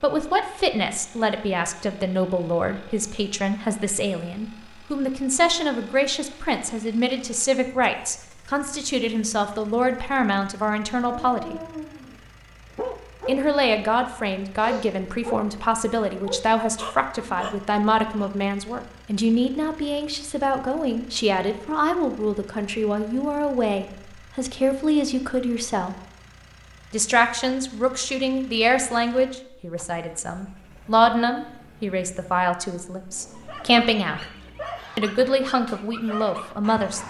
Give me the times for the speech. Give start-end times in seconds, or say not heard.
0.0-11.6, 13.2-25.9, 26.9-34.2, 35.0-37.0.